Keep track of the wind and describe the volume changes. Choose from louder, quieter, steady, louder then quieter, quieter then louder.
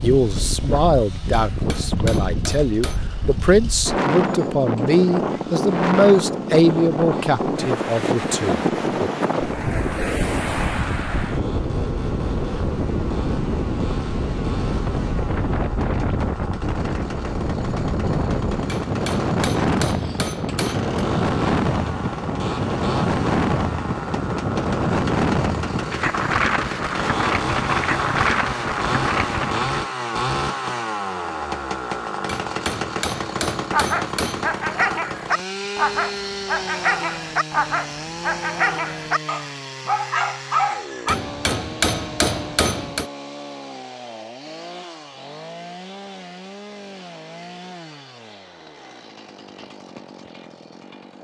steady.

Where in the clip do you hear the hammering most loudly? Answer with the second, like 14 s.
42 s.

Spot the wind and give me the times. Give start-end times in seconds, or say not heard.
0.0-29.9.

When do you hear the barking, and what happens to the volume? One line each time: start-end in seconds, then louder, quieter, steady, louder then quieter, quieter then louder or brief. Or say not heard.
33.7-41.1 steady.